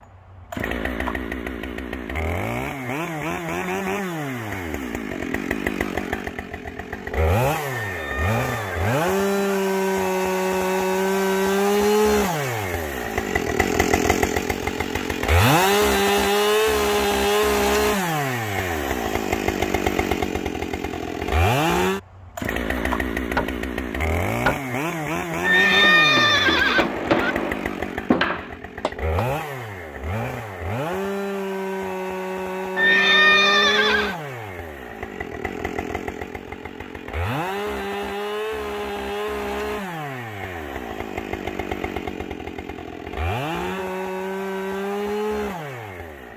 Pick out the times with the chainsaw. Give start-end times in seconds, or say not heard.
0.0-46.3.